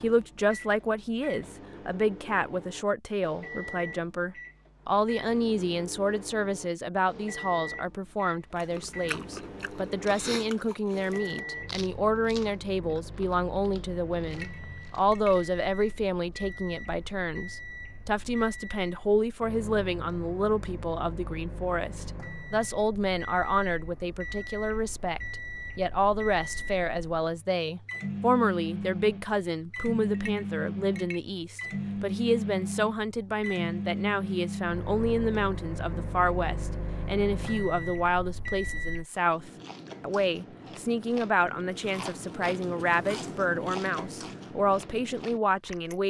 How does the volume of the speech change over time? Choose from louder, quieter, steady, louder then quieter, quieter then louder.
steady.